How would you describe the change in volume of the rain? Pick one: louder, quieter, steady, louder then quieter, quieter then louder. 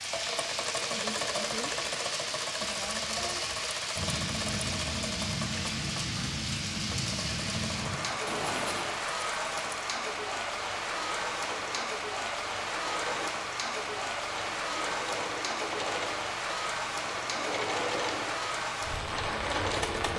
steady.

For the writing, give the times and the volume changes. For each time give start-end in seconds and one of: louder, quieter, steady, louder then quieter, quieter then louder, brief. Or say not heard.
4.0-8.8 steady.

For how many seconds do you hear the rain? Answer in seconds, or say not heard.
20 s.